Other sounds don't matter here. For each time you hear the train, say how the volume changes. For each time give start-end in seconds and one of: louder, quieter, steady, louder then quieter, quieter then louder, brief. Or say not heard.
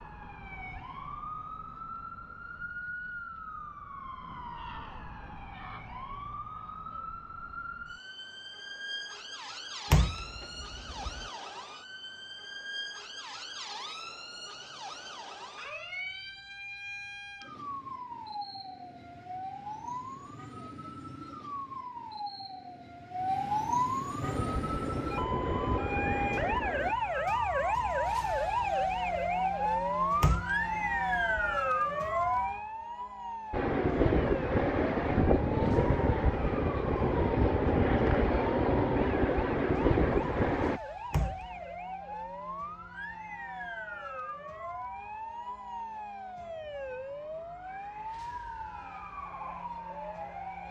24.2-26.9 brief
33.5-40.8 steady.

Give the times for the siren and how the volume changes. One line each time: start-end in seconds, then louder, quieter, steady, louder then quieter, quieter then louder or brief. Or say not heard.
0.0-50.6 louder then quieter.